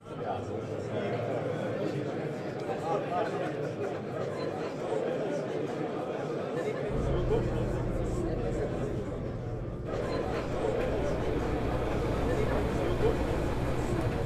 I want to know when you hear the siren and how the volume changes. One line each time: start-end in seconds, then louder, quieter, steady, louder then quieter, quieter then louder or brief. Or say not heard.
not heard.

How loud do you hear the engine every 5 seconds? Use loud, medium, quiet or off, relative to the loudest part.
off, loud, loud.